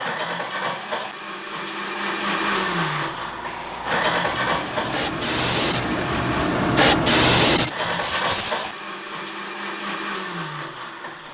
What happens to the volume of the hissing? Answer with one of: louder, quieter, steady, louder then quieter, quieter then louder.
louder.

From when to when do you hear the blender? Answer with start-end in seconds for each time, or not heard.
0.0-11.2.